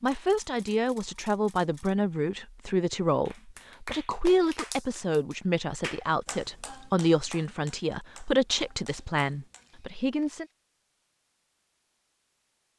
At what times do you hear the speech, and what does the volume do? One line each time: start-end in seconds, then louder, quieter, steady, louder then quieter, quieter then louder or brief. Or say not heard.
0.0-10.4 steady.